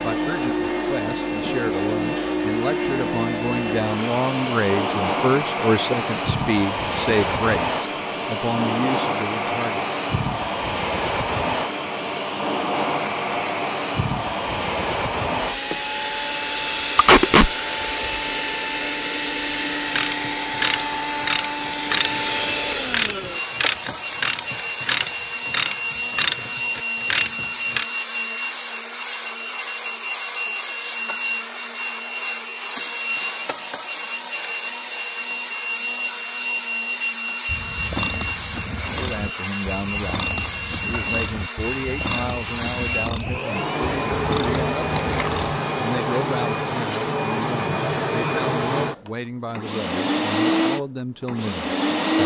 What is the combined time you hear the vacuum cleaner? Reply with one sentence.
You can hear the vacuum cleaner for 52 seconds altogether.